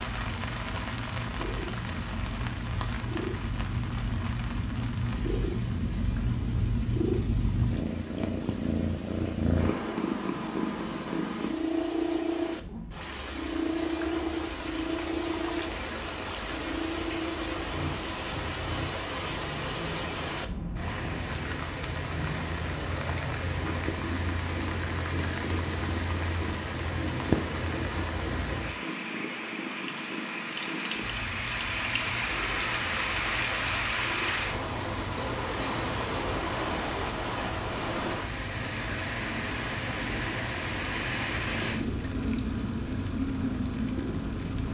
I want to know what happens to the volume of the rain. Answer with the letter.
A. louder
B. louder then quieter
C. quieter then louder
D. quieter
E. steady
A.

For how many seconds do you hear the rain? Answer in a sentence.
The rain can be heard for 45 seconds in total.